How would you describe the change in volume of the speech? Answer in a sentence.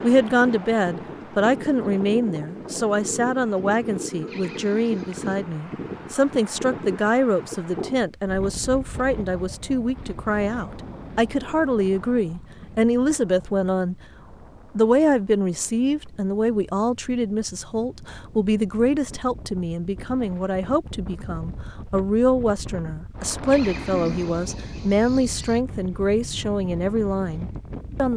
The volume of the speech stays about the same.